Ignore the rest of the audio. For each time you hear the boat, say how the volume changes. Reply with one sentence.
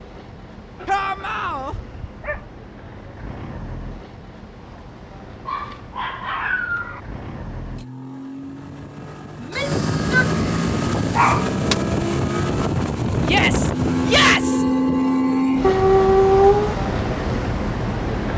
You can hear the boat from 0.0 to 18.3 s, getting louder.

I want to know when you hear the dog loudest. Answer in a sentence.
The loudest moment of the dog is at 16 seconds.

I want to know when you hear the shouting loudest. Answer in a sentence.
The volume of the shouting peaks at 14 seconds.